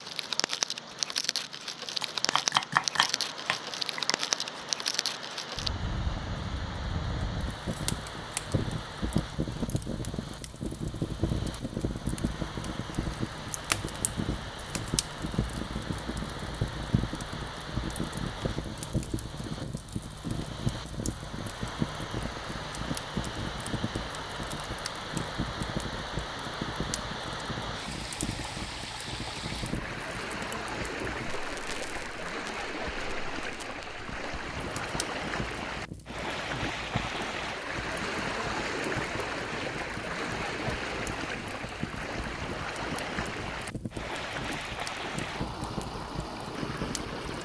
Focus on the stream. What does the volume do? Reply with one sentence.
The loudness of the stream goes up.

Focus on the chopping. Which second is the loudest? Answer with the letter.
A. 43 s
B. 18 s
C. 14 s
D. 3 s
D.